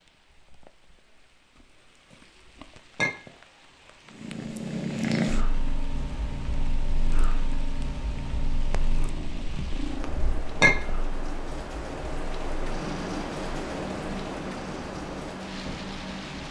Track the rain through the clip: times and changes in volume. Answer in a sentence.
The rain can be heard from 0.0 to 16.4 s, getting louder.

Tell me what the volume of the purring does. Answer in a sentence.
The loudness of the purring goes down.